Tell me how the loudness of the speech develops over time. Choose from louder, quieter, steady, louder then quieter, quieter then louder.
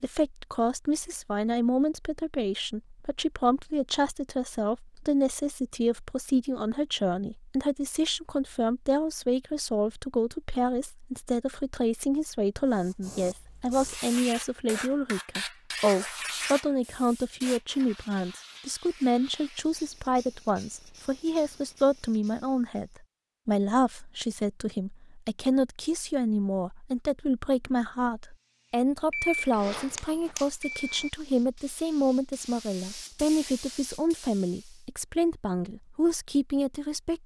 steady.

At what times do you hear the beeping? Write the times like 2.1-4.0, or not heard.
29.1-31.1.